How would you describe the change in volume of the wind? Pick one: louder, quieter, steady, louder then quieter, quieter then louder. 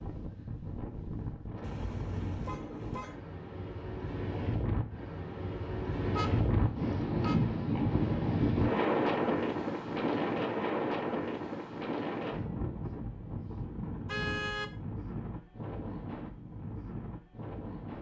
louder then quieter.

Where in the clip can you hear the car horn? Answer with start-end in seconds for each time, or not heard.
1.6-3.1, 6.0-7.4, 14.1-14.7.